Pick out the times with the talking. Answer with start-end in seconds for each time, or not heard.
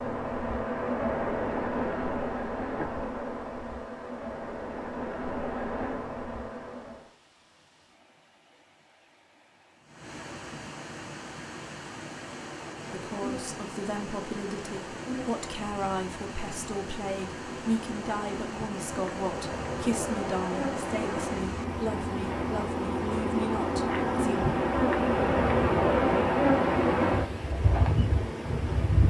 12.9-24.4.